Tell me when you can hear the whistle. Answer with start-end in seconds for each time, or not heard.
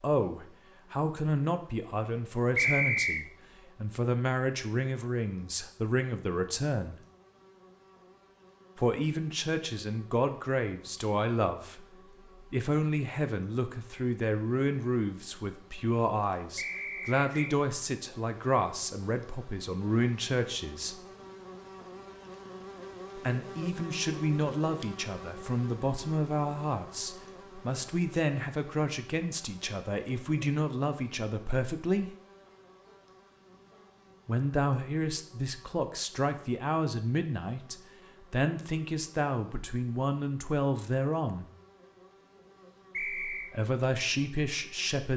2.5-3.2, 16.6-17.6, 42.9-43.5.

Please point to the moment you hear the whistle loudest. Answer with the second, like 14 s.
3 s.